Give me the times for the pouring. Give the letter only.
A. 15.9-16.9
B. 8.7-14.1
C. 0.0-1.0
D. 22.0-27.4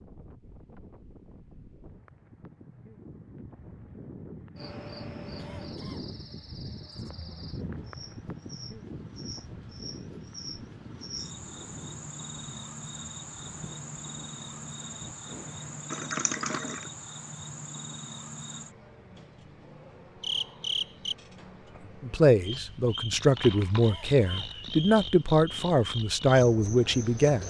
A.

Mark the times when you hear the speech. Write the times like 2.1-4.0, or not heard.
22.0-27.4.